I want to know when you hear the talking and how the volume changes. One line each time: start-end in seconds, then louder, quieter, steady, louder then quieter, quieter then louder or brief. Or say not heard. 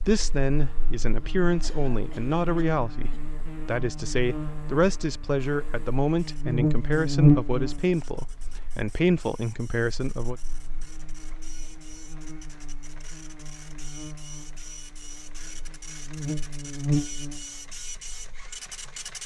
0.1-10.3 steady.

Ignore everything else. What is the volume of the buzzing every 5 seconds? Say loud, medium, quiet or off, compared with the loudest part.
quiet, loud, quiet, medium.